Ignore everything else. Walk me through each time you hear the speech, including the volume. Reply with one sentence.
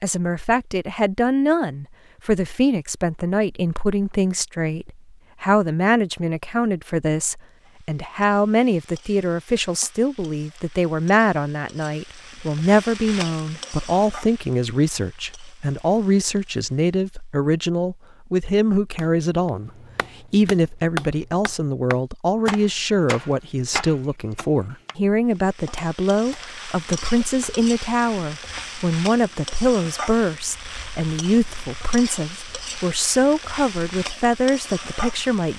The speech can be heard from 0.0 to 19.7 s, at a steady volume; and from 20.3 to 35.5 s, at a steady volume.